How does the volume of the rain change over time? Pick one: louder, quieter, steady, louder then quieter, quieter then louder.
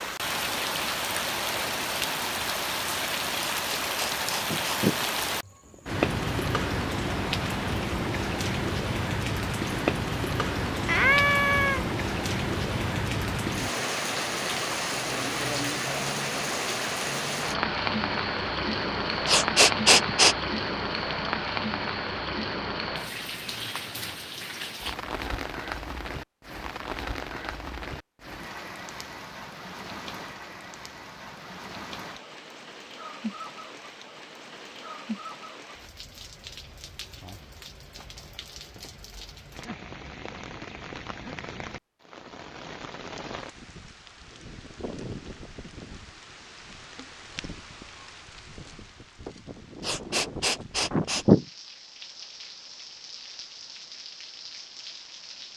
quieter.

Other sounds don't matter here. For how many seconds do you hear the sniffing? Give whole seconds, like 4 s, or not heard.
4 s.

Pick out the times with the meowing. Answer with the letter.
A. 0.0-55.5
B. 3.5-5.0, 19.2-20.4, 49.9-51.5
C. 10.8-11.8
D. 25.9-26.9
C.